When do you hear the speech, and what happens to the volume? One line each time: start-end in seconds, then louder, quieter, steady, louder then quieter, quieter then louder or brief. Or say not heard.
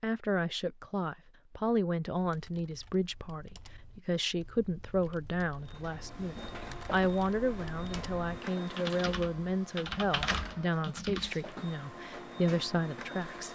0.0-13.5 steady.